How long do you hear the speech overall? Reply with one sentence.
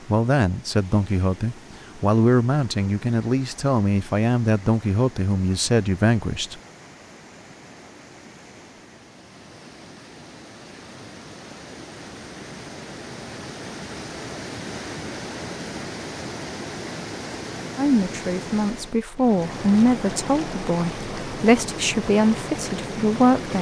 You can hear the speech for 12 seconds altogether.